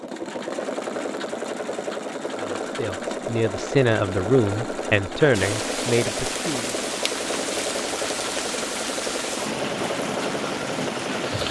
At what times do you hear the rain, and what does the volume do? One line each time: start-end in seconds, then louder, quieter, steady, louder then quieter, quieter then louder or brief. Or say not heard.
5.3-11.4 steady.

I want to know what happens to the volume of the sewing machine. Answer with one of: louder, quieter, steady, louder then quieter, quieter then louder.
steady.